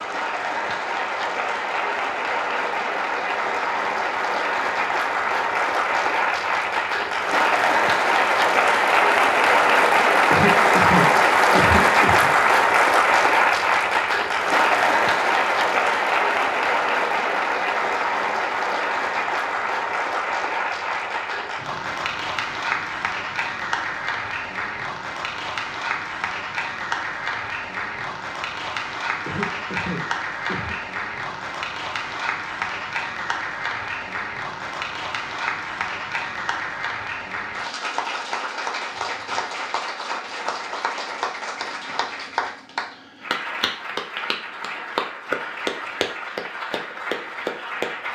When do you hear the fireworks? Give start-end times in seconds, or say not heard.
not heard.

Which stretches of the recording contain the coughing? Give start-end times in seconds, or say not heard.
10.3-12.3, 29.2-30.8.